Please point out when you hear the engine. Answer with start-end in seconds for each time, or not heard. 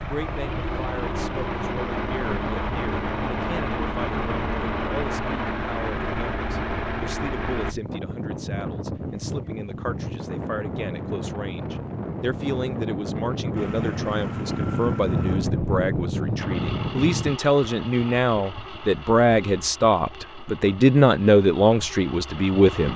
0.0-7.8, 13.6-22.9.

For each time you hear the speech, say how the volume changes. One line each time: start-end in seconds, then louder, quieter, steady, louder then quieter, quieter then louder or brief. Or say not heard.
0.0-22.9 louder.